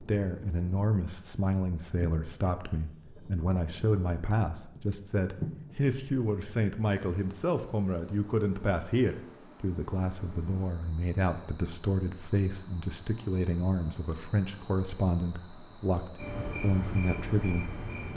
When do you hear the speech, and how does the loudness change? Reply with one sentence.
You can hear the speech from 0.0 to 18.1 s, at a steady volume.